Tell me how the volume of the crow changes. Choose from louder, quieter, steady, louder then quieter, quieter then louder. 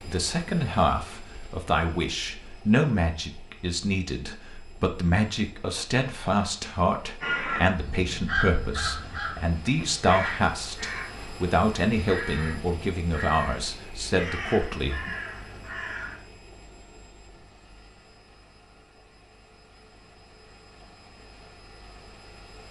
quieter.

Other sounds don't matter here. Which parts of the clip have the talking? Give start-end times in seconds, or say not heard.
0.0-15.1.